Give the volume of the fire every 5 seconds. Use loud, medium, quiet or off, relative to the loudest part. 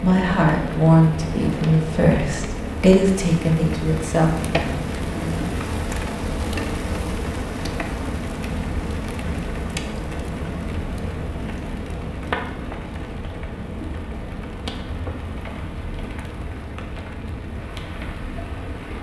loud, loud, loud, medium.